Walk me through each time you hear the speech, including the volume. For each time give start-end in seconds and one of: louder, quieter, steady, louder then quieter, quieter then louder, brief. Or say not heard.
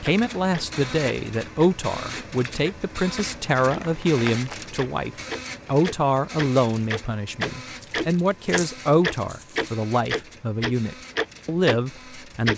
0.0-12.5 steady.